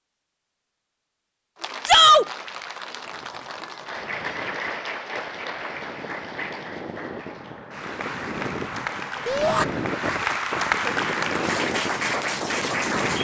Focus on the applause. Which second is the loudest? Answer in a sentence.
The loudest moment of the applause is at 11 seconds.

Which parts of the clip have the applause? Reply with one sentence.
The applause can be heard from 1.6 to 13.1 s.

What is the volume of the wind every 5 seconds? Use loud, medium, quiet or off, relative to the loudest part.
quiet, loud, loud.